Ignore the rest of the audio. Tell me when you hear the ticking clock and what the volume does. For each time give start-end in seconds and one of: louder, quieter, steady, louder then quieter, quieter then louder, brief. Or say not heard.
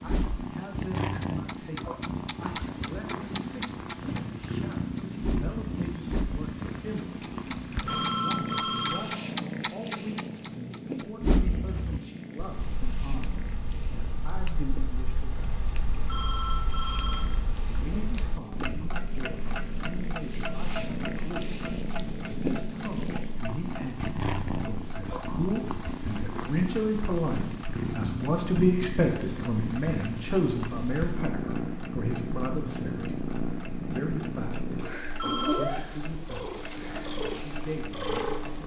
0.0-38.6 quieter.